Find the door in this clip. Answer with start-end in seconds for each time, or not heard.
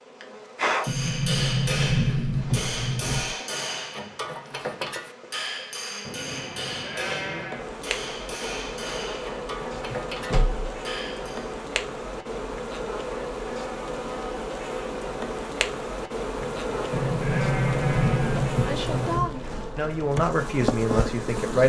0.8-3.4, 9.7-10.7, 16.9-19.4.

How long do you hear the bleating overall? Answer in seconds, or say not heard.
4 s.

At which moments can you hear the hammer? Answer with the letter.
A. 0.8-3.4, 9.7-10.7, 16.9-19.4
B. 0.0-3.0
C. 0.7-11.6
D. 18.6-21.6
C.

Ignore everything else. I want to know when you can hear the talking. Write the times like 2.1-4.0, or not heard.
18.6-21.6.